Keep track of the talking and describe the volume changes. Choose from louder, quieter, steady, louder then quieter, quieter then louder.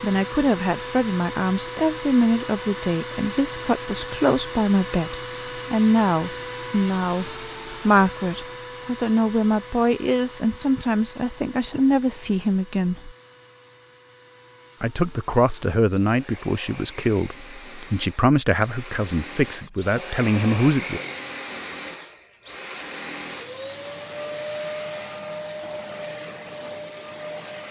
steady.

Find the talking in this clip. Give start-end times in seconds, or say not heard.
0.0-13.1, 14.8-21.0.